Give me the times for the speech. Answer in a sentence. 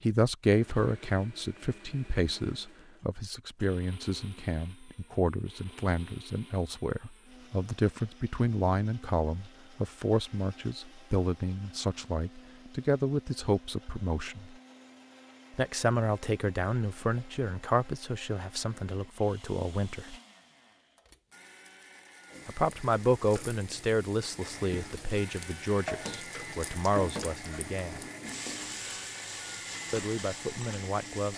You can hear the speech from 0.0 to 14.6 s, from 15.5 to 20.1 s, from 22.4 to 28.0 s and from 29.9 to 31.3 s.